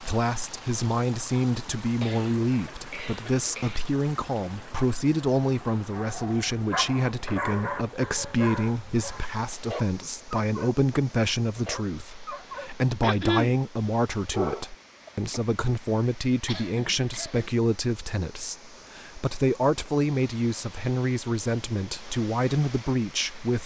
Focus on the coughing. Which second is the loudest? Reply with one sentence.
The loudest moment of the coughing is at 13 seconds.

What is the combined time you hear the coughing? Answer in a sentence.
The coughing can be heard for 4 seconds in total.